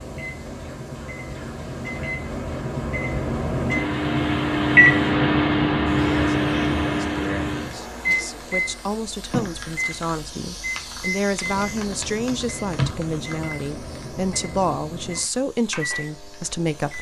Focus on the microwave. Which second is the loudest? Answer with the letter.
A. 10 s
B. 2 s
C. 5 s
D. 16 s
C.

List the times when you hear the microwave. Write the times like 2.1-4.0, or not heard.
0.0-16.9.